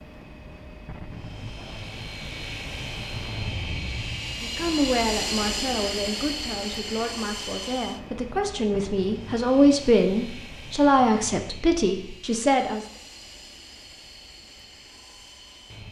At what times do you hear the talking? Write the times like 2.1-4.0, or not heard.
4.4-12.8.